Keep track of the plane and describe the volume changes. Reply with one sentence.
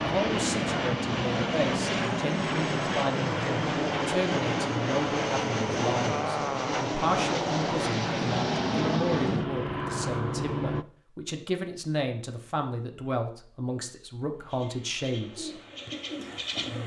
The volume of the plane stays about the same.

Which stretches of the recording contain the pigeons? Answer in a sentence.
You can hear the pigeons from 14.3 to 16.8 s.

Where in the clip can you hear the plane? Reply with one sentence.
The plane can be heard from 0.0 to 10.8 s.